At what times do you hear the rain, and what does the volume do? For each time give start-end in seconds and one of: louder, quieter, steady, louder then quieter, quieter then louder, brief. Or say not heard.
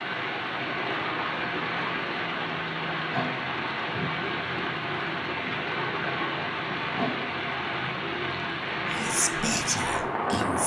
0.0-10.6 steady.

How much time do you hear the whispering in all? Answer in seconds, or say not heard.
2 s.